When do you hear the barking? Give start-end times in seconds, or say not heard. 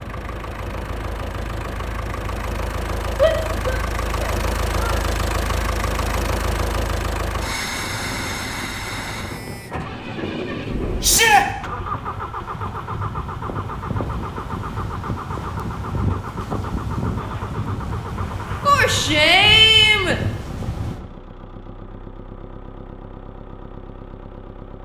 not heard.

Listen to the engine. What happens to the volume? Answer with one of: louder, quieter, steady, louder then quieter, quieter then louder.
quieter.